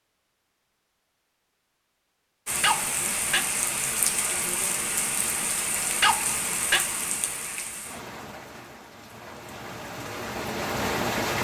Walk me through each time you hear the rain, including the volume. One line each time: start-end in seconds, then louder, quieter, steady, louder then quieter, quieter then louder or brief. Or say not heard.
2.5-11.3 quieter then louder.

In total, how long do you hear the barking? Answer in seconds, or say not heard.
2 s.